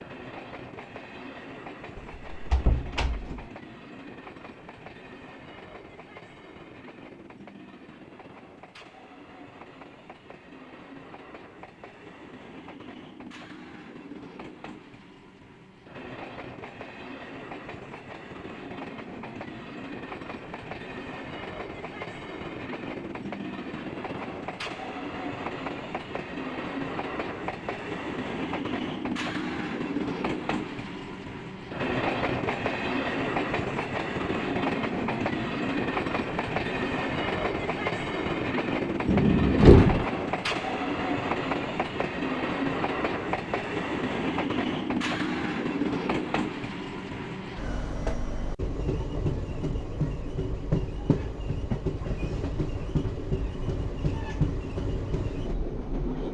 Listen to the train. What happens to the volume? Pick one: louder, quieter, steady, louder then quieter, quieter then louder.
louder.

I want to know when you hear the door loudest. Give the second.
40 s.